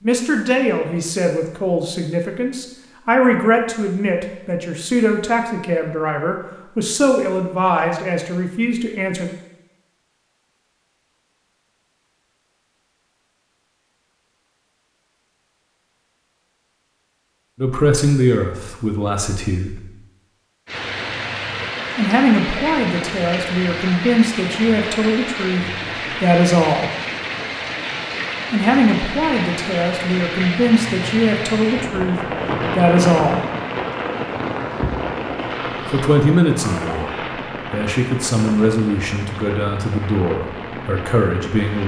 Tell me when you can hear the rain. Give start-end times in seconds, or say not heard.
20.6-41.8.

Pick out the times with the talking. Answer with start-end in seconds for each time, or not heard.
0.0-9.3, 17.6-19.8, 21.9-26.9, 28.5-33.5, 35.9-37.1, 37.7-41.8.